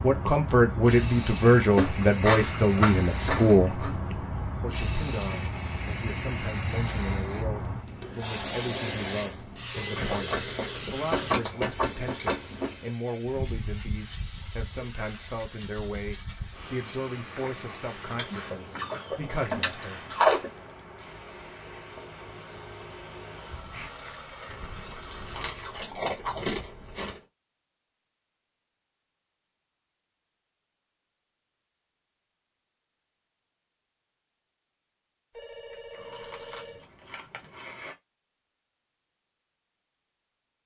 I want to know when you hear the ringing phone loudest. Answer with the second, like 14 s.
10 s.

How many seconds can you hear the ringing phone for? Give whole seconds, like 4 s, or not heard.
3 s.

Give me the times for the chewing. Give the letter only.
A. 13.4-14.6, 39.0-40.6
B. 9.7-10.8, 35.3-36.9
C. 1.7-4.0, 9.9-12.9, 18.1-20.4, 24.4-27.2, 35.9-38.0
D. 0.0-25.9
C.